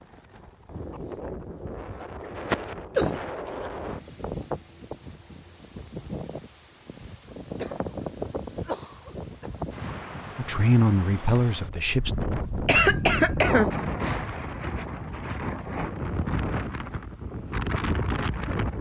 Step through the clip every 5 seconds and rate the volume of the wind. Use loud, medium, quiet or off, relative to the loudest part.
medium, medium, loud, loud.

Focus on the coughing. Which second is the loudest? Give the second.
13 s.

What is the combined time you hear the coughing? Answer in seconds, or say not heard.
4 s.